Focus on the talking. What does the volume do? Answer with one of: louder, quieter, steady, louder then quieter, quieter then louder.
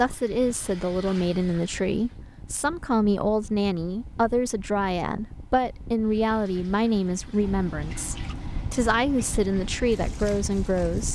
steady.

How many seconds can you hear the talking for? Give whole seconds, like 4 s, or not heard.
11 s.